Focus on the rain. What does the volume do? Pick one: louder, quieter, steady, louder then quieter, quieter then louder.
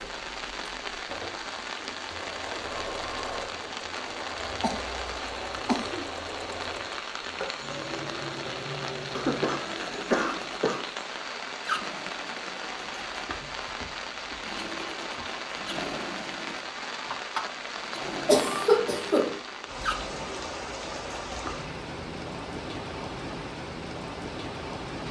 steady.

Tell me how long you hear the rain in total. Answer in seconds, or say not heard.
25 s.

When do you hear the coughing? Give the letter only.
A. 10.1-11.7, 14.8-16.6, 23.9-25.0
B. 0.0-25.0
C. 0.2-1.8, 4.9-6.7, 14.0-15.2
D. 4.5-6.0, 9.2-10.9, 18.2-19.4
D.